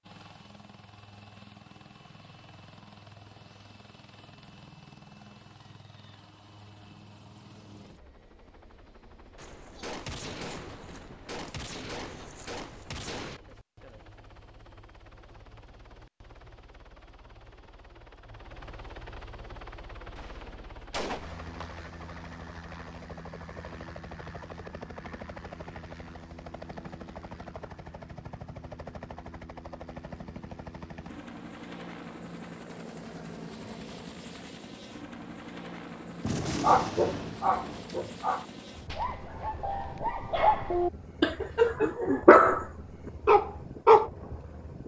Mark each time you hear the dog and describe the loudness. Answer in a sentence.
You can hear the dog from 36.6 to 42.6 s, getting quieter then louder; and briefly from 43.2 to 44.1 s.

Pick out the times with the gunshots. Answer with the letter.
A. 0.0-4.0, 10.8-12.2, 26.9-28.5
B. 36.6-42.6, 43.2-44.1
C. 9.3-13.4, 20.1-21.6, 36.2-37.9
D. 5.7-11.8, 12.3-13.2
C.